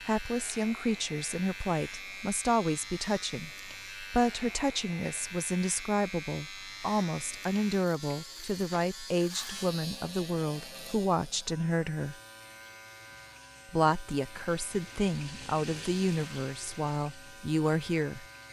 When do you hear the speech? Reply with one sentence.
The speech can be heard from 0.1 to 12.2 s and from 13.7 to 18.2 s.